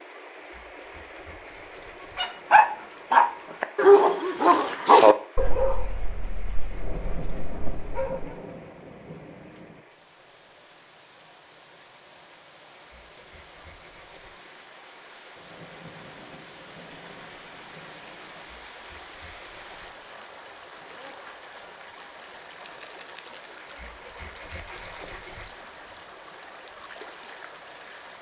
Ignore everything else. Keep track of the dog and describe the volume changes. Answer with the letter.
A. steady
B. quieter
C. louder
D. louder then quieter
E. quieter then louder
B.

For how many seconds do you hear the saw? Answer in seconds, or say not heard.
9 s.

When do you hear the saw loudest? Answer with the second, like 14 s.
25 s.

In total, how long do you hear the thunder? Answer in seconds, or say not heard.
6 s.